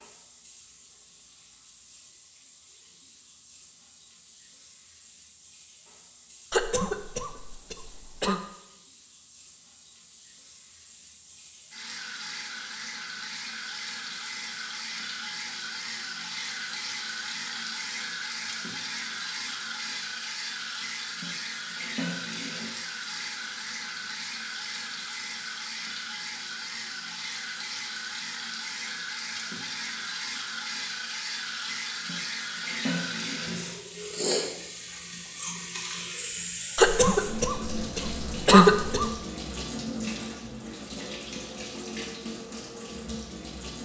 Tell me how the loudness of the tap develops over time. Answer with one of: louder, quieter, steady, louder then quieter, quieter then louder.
louder.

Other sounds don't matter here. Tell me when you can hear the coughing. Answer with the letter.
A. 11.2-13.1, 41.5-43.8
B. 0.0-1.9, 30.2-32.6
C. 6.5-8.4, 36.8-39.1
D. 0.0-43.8
C.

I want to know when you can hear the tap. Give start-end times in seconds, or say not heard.
0.0-43.8.